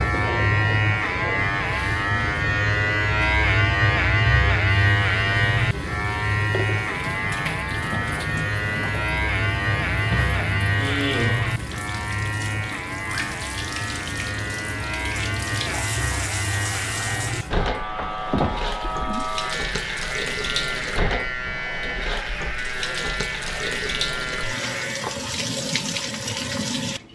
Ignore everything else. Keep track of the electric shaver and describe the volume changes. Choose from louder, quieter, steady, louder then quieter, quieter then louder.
quieter.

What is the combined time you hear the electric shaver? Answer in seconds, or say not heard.
25 s.